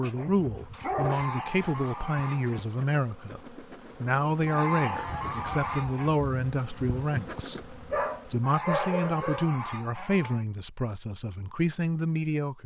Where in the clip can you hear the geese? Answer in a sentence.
You can hear the geese from 1.0 to 2.6 s, from 4.5 to 6.1 s and from 8.4 to 10.4 s.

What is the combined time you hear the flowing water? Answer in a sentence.
You can't hear the flowing water here.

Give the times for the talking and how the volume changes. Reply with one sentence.
You can hear the talking from 0.0 to 12.6 s, at a steady volume.